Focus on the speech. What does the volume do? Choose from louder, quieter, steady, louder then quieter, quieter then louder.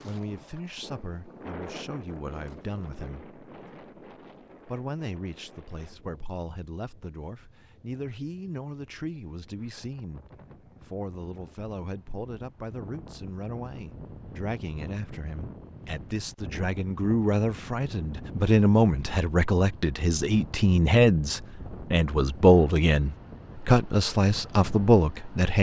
louder.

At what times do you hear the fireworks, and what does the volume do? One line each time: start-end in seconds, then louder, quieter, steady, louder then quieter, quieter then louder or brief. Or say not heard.
not heard.